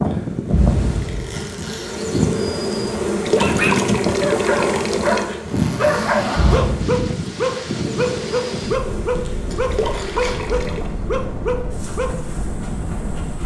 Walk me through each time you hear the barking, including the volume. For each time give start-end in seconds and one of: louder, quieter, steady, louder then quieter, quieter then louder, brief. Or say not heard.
3.4-12.1 steady.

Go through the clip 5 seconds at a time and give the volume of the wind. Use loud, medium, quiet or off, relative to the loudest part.
loud, loud, medium.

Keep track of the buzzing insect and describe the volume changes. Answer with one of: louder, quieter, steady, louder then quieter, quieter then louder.
quieter.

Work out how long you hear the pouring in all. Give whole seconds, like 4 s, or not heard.
3 s.